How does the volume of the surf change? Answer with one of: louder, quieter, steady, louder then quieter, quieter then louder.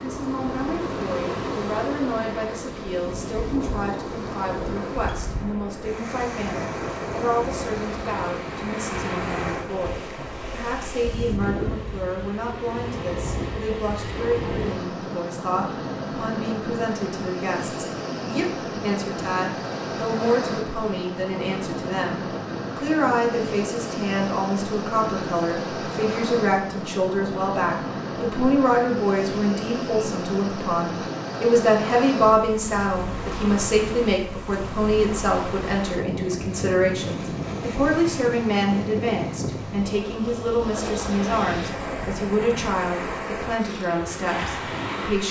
steady.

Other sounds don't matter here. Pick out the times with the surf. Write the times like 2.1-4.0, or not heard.
0.0-45.2.